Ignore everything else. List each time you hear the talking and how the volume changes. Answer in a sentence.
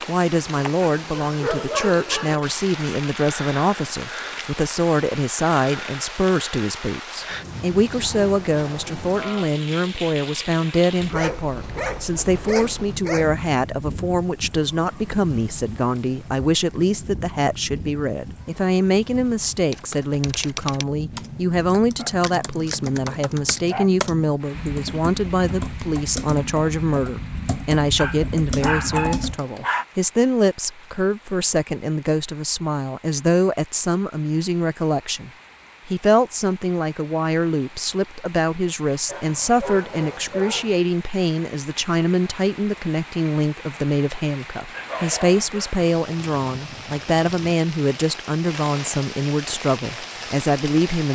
You can hear the talking from 0.1 to 51.1 s, at a steady volume.